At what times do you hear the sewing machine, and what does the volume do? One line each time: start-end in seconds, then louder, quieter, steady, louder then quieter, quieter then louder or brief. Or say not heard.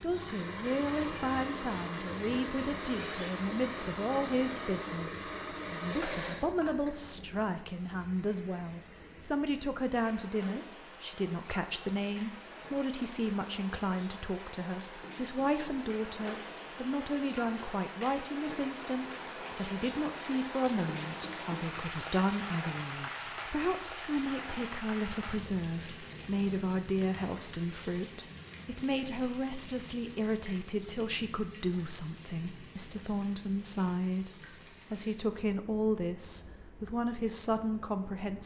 0.0-7.2 steady.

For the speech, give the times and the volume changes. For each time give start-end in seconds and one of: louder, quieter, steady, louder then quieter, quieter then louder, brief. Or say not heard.
0.0-38.4 steady.